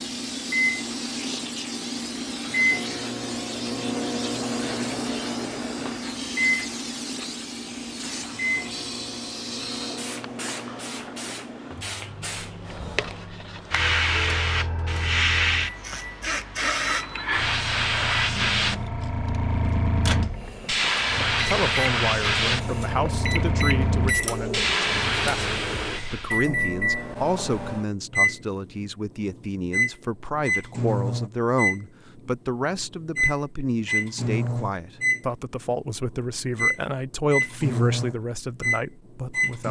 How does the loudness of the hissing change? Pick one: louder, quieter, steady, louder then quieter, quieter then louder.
louder.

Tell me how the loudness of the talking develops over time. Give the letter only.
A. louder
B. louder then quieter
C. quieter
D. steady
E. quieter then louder
D.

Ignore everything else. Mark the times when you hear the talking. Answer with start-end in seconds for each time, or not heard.
21.4-39.6.